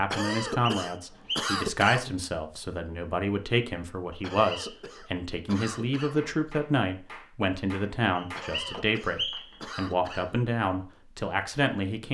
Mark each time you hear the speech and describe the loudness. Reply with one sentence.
The speech can be heard from 0.0 to 12.0 s, at a steady volume.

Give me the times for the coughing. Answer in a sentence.
You can hear the coughing from 0.1 to 2.1 s, from 4.2 to 6.2 s and from 8.3 to 10.4 s.